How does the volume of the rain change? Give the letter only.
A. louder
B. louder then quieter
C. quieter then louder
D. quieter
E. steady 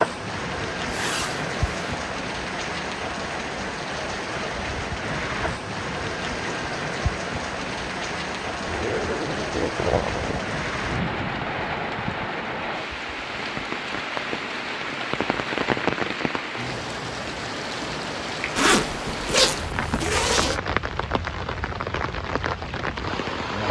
E.